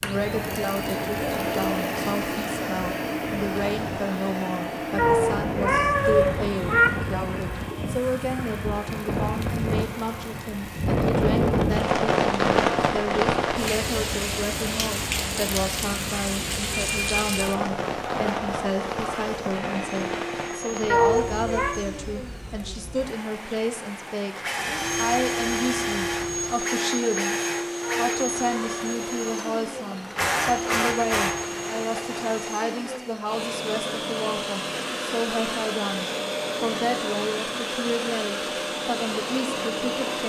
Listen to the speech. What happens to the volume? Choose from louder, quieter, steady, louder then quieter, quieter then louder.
steady.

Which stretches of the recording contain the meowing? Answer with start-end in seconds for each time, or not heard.
5.0-6.9, 20.9-21.8, 27.8-28.9.